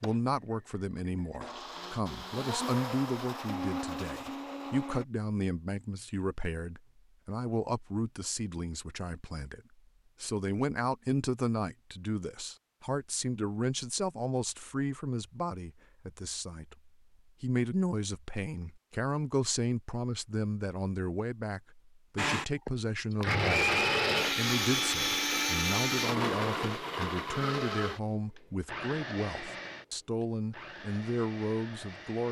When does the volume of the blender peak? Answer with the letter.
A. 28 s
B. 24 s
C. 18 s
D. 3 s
B.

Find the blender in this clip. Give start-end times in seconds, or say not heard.
0.0-5.0, 22.1-32.2.